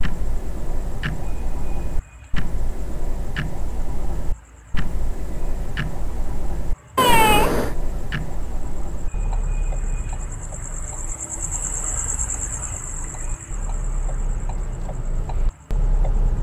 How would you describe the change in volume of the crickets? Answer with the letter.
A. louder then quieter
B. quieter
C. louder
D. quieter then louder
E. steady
A.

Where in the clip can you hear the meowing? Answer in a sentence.
The meowing can be heard from 7.0 to 7.8 s.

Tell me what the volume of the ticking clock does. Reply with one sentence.
The loudness of the ticking clock goes down, then up.